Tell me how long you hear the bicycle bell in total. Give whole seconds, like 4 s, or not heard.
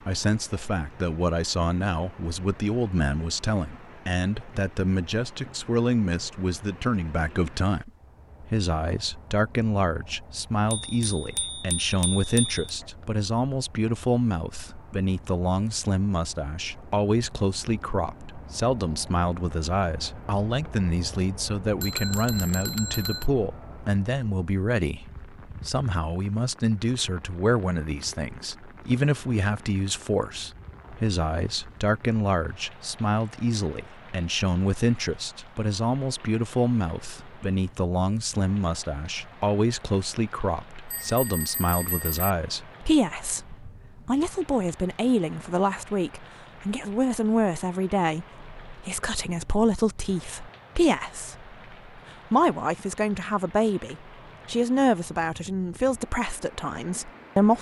5 s.